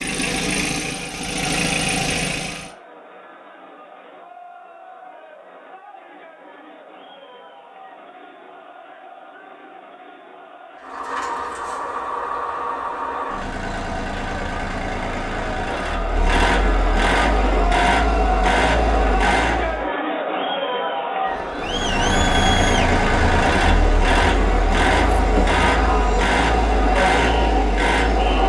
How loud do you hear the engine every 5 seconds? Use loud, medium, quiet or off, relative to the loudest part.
loud, off, medium, loud, loud, loud.